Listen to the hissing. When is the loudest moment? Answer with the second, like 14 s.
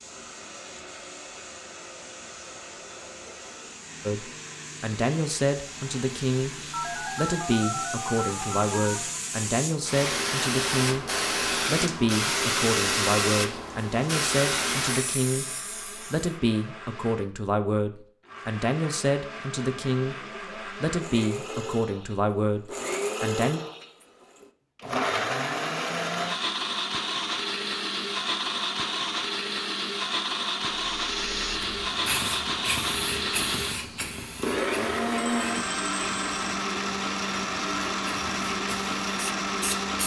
13 s.